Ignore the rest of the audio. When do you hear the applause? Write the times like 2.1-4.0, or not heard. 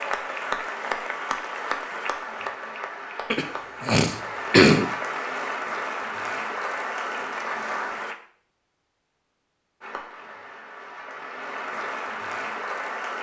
0.0-8.2, 9.8-13.1.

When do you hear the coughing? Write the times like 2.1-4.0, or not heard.
3.3-4.8.